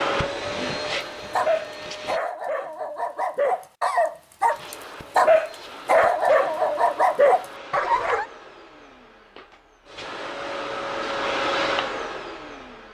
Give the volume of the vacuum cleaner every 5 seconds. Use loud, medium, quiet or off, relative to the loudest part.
loud, quiet, loud.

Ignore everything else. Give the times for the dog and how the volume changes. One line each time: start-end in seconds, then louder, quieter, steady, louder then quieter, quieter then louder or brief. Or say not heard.
1.3-8.2 louder.